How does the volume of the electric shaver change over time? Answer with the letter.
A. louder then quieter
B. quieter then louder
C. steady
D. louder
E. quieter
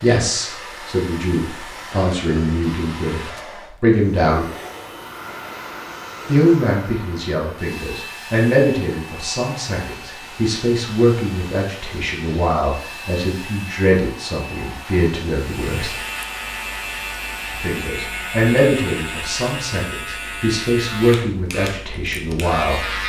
C.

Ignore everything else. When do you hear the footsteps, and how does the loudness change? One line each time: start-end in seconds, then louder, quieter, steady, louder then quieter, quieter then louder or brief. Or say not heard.
not heard.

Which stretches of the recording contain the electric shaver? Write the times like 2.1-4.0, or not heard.
15.3-23.0.